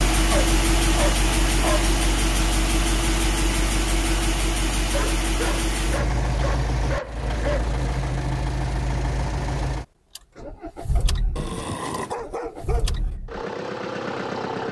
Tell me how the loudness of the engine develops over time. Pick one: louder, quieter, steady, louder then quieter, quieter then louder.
quieter.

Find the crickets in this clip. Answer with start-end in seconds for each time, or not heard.
not heard.